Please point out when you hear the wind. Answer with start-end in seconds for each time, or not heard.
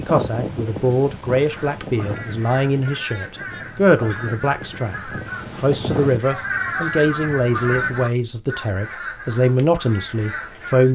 0.0-6.2.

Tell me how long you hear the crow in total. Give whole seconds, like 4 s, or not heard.
9 s.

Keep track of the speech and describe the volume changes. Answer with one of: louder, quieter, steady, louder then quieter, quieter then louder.
steady.